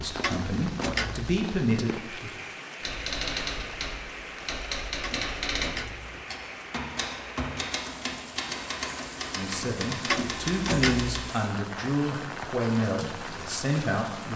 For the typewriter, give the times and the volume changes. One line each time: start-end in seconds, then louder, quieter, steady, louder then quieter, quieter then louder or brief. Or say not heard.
2.8-11.4 steady.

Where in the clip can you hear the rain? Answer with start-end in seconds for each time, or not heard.
0.0-14.3.